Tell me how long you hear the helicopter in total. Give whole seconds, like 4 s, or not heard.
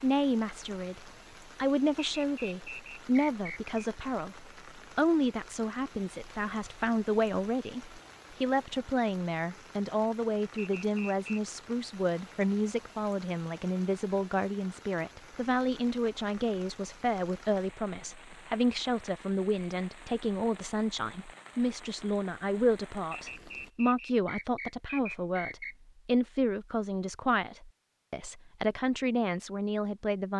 not heard.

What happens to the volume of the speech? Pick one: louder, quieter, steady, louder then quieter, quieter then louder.
steady.